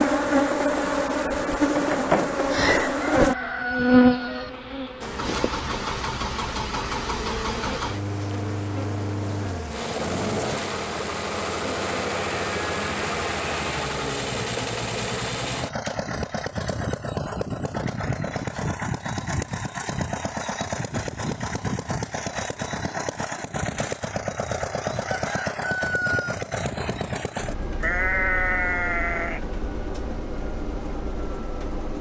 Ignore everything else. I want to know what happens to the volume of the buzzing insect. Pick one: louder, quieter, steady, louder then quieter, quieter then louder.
quieter.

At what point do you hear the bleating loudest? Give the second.
28 s.